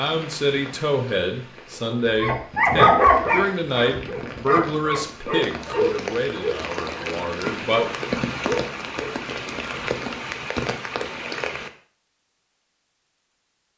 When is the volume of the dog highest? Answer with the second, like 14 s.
3 s.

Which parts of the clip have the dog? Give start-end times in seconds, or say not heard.
2.2-9.1.